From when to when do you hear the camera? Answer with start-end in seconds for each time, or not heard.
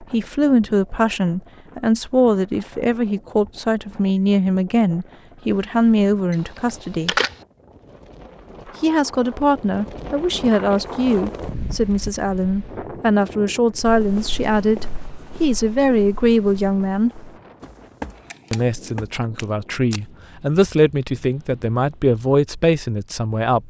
5.5-7.3, 18.3-18.9.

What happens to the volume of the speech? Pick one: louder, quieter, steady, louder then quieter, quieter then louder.
steady.